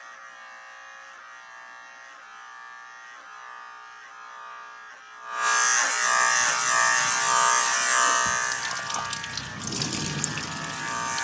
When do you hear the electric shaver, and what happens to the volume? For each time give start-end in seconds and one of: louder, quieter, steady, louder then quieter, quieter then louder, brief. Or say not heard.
0.0-11.1 louder then quieter.